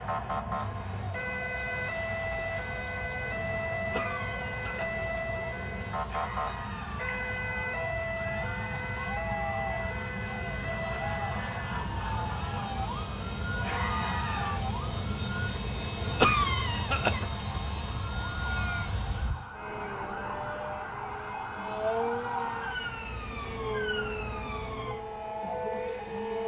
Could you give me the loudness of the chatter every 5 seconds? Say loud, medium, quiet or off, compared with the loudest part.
medium, loud, loud, off, off, off.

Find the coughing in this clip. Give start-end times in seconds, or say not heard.
3.9-5.0, 16.2-17.2.